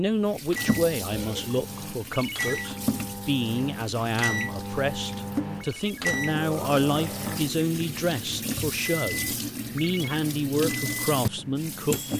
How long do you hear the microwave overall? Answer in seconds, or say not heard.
12 s.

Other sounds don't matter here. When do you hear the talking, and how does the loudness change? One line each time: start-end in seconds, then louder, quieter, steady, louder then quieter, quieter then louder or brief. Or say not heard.
0.0-12.0 steady.